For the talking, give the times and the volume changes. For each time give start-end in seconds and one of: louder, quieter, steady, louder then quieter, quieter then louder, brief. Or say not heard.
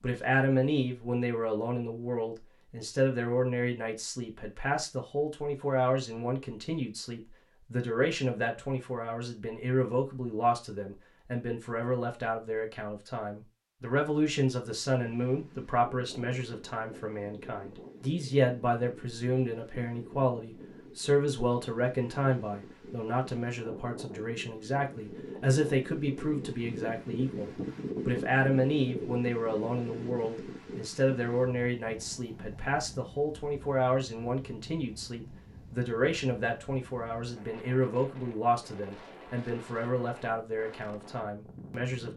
0.0-42.1 steady.